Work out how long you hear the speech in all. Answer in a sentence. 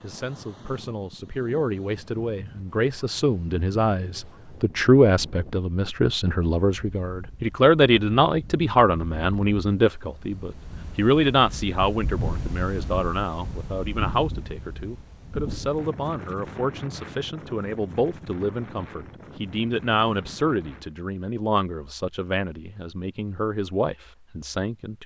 You can hear the speech for 25 seconds altogether.